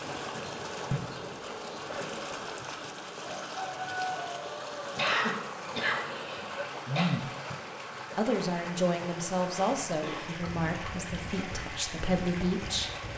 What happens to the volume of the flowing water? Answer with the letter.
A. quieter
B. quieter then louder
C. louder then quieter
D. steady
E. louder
D.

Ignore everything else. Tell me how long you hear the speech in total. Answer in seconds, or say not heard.
5 s.